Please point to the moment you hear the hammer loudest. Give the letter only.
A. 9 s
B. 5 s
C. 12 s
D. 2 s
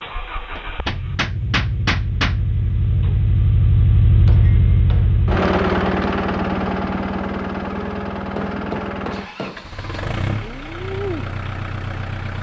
D.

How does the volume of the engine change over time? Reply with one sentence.
The loudness of the engine goes up, then down.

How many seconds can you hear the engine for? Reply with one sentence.
You can hear the engine for 12 seconds altogether.